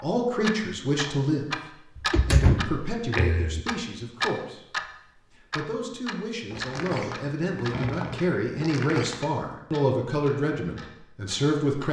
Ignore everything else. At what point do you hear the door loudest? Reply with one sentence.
The loudest moment of the door is at 2 seconds.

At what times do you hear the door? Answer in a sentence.
You can hear the door from 1.9 to 3.6 s and from 6.5 to 9.2 s.